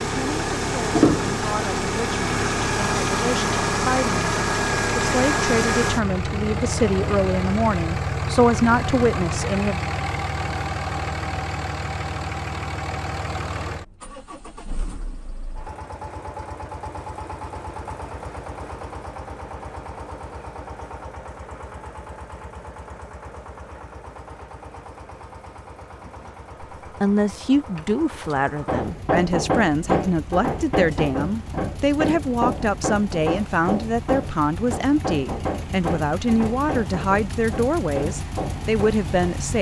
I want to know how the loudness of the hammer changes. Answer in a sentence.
The loudness of the hammer goes down.